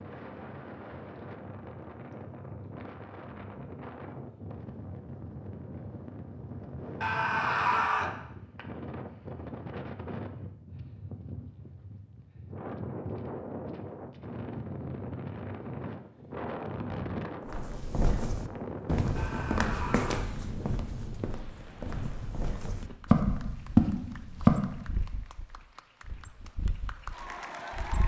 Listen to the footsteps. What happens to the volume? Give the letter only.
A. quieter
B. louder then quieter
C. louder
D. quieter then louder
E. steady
D.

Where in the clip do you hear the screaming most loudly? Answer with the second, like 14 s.
8 s.